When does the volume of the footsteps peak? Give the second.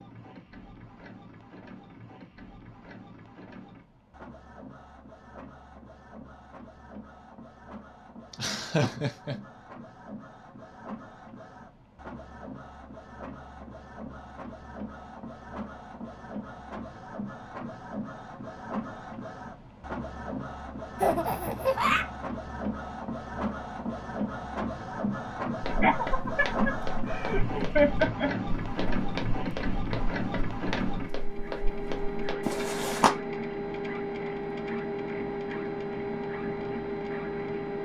33 s.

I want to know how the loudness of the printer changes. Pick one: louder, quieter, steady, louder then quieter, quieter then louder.
louder.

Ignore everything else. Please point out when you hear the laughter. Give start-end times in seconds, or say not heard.
8.3-9.3, 21.0-22.1, 25.8-28.3.